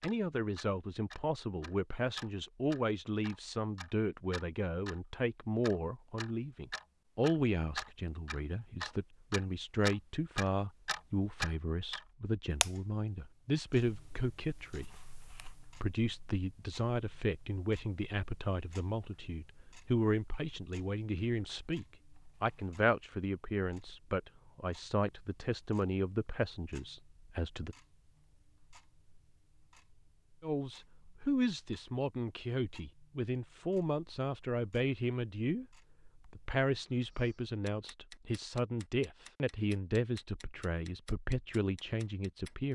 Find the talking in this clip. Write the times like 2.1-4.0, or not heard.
0.0-27.8, 30.4-35.6, 36.3-42.7.